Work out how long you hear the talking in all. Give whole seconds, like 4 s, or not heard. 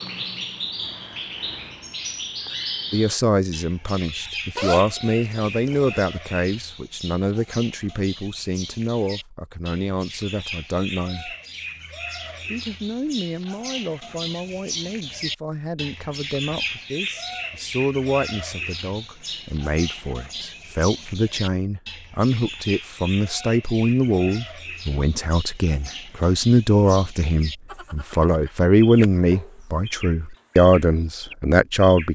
28 s.